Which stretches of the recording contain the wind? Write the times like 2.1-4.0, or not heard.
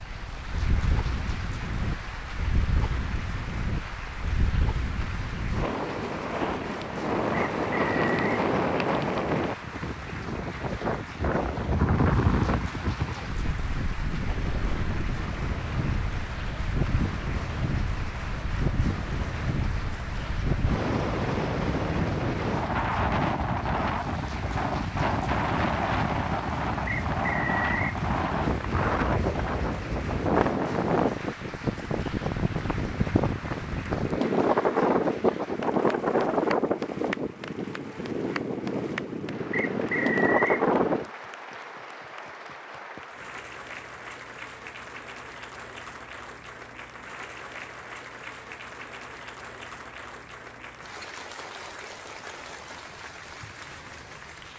0.0-41.1.